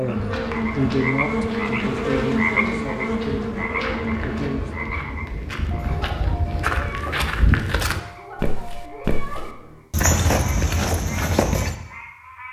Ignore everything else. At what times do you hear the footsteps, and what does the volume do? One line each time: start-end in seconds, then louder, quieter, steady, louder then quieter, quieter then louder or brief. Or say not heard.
0.0-11.8 louder.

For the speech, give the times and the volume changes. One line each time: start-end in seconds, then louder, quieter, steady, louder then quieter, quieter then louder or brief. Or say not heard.
0.0-4.7 quieter.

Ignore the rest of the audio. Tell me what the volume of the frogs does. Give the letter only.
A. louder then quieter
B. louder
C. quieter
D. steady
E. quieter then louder
C.